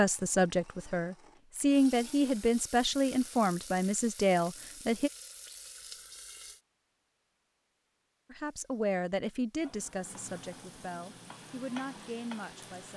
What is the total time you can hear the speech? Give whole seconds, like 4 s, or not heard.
10 s.